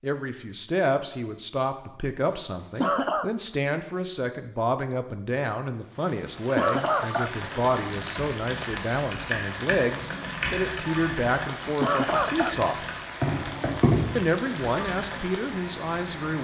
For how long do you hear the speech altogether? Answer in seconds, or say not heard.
15 s.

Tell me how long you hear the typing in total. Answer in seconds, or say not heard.
8 s.